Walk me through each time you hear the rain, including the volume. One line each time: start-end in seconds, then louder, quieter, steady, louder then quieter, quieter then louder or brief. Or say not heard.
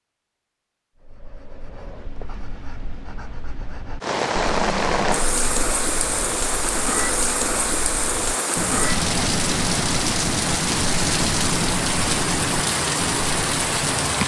4.0-14.2 steady.